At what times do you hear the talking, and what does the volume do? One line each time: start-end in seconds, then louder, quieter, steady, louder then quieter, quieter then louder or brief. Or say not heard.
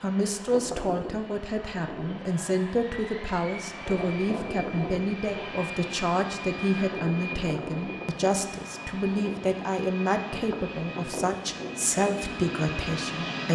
0.0-13.5 steady.